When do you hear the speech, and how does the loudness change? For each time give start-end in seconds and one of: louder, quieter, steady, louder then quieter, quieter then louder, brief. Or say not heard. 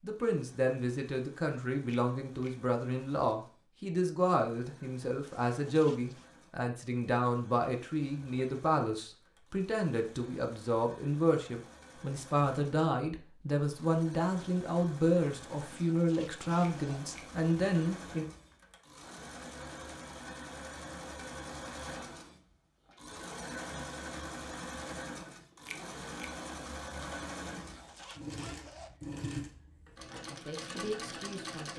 0.0-18.2 steady
30.2-31.7 brief.